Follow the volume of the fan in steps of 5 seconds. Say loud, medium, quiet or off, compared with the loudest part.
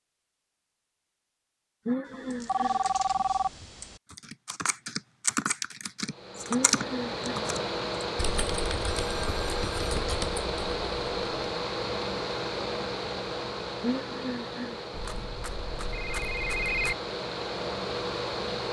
off, loud, loud, loud.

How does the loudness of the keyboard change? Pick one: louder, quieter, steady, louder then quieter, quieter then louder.
louder then quieter.